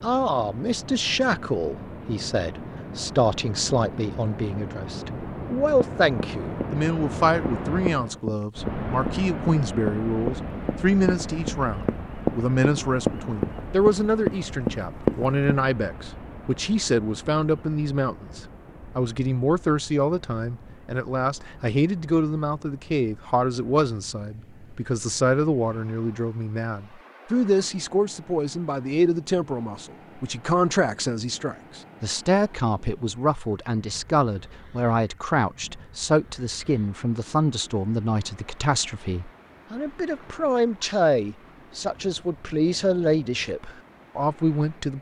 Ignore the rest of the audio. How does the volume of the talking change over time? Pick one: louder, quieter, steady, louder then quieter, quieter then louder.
steady.